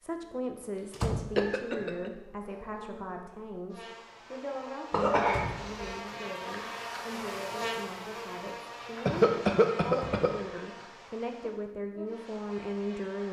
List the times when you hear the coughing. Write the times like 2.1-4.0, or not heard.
1.4-2.1, 4.9-6.0, 9.1-10.3.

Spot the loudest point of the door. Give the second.
1 s.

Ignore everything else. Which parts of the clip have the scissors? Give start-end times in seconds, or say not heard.
not heard.